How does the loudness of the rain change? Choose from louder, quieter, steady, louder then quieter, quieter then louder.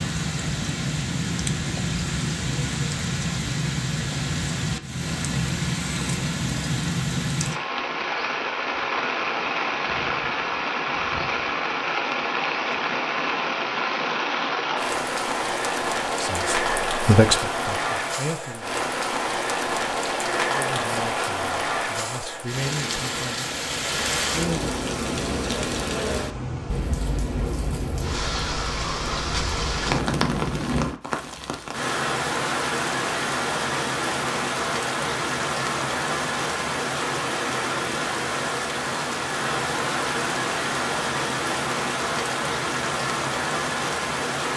steady.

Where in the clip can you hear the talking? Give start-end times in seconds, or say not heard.
16.2-18.9, 20.4-23.5.